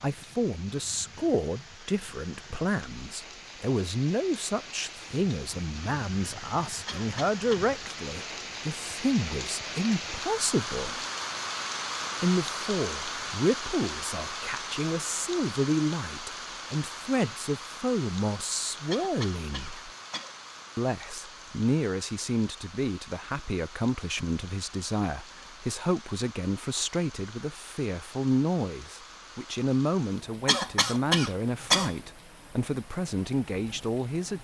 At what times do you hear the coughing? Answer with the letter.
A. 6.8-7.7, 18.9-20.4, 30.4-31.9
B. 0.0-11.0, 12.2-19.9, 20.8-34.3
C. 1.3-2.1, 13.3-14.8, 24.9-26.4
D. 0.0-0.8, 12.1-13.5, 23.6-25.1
A.